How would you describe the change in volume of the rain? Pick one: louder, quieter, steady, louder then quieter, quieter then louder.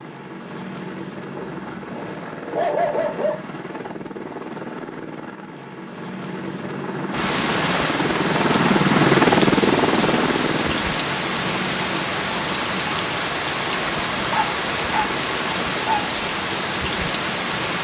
steady.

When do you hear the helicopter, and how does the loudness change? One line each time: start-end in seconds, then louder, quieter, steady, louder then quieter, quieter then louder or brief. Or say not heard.
0.0-17.7 louder then quieter.